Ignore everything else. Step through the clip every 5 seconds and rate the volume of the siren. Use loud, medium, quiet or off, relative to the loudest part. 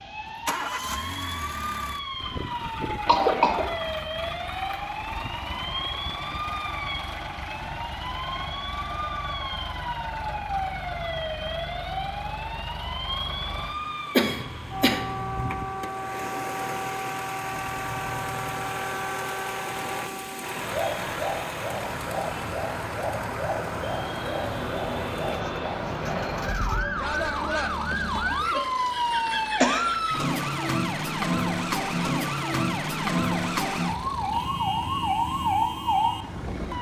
medium, medium, medium, medium, medium, loud, loud, loud.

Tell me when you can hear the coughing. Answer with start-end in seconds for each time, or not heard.
3.0-3.7, 14.2-15.0, 28.9-29.9.